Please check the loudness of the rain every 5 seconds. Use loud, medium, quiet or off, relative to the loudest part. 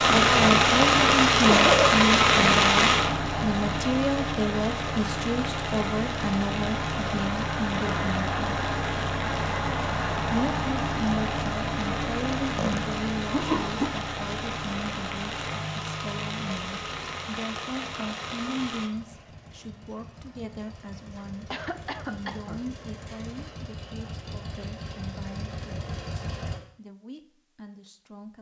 loud, quiet, quiet, quiet, off, off.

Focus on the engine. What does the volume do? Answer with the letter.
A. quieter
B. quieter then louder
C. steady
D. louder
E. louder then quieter
A.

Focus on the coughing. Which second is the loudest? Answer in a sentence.
The loudest moment of the coughing is at 2 seconds.